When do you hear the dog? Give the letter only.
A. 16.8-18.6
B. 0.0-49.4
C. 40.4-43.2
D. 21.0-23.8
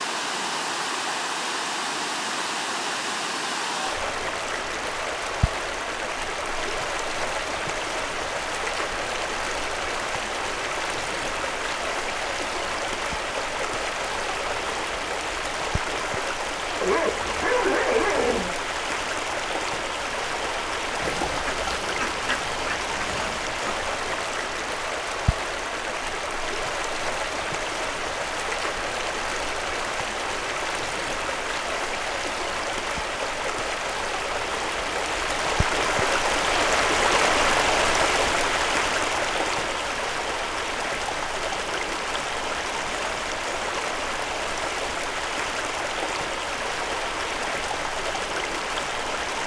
A.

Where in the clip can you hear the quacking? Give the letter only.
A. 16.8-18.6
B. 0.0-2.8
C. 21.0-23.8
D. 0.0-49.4
C.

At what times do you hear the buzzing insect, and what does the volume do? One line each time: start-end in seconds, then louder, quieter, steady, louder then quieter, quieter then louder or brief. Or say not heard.
not heard.